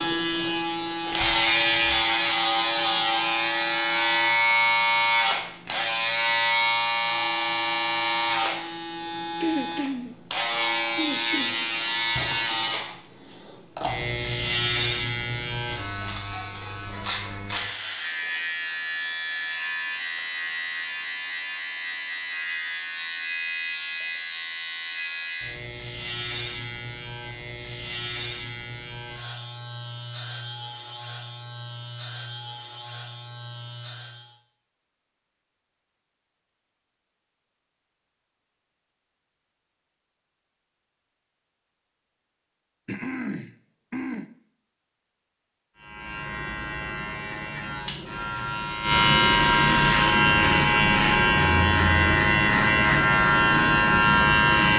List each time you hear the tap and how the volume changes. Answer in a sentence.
The tap can't be heard in this clip.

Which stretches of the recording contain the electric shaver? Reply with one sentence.
You can hear the electric shaver from 0.0 to 34.4 s and from 45.8 to 54.7 s.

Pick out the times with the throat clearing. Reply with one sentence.
You can hear the throat clearing from 9.4 to 10.2 s, from 10.9 to 11.7 s and from 42.9 to 44.3 s.